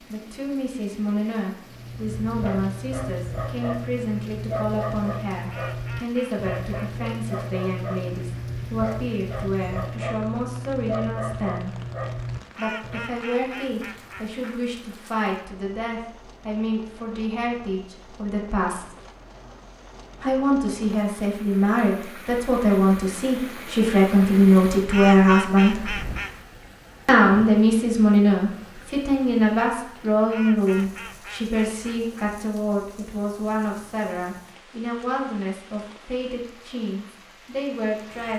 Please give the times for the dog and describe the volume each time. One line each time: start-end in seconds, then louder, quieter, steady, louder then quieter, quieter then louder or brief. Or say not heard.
1.6-13.2 steady.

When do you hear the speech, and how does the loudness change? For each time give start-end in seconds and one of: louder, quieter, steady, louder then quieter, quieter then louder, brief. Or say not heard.
0.1-11.8 steady
12.6-18.9 steady
20.2-25.9 louder
27.1-38.3 quieter.